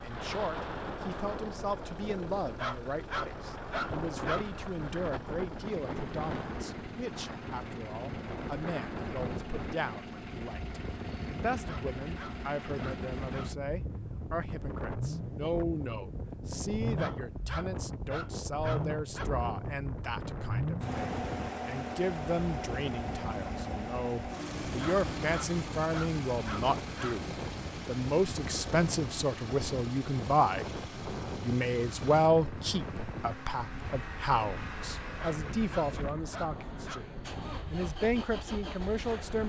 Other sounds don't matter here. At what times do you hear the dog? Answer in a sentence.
You can hear the dog from 2.4 to 4.5 s, from 11.5 to 13.6 s, from 16.8 to 19.3 s, from 24.6 to 27.2 s and from 35.0 to 37.0 s.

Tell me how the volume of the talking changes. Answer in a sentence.
The volume of the talking goes up.